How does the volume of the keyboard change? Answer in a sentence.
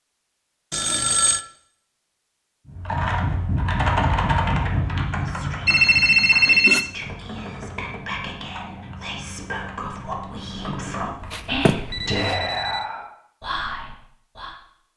The loudness of the keyboard goes down.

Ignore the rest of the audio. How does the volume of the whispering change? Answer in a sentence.
The loudness of the whispering goes up.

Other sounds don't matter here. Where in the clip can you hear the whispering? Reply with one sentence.
The whispering can be heard from 4.8 to 14.6 s.